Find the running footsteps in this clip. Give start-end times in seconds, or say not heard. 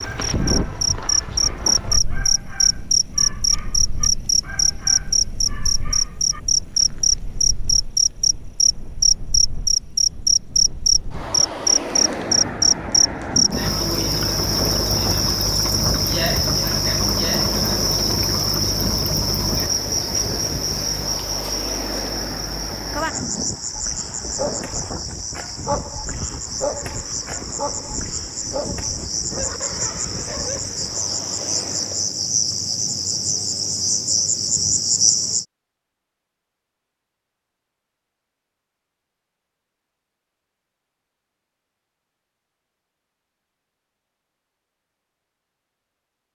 not heard.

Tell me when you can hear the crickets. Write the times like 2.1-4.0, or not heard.
0.0-35.5.